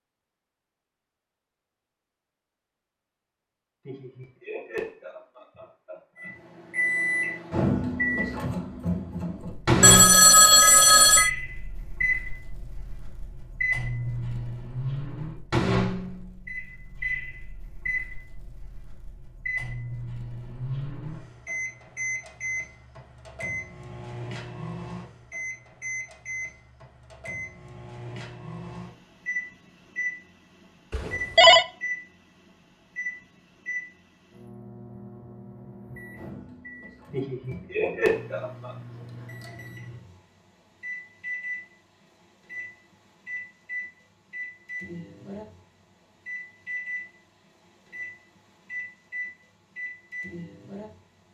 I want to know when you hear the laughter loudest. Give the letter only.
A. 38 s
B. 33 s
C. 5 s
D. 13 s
A.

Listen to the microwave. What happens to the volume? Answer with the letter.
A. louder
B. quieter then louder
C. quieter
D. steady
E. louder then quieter
C.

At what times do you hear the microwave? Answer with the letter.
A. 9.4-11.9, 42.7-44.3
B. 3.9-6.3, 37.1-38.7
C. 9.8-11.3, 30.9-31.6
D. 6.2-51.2
D.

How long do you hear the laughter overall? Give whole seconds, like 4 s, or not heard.
4 s.